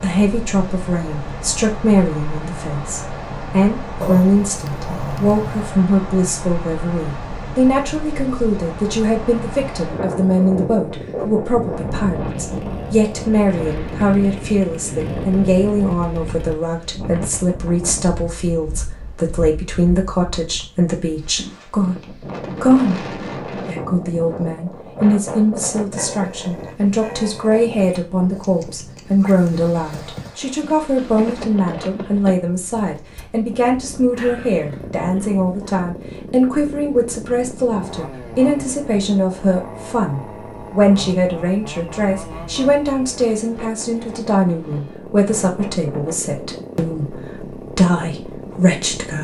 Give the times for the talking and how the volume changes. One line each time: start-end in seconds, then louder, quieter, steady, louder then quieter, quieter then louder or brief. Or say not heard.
0.0-49.1 steady.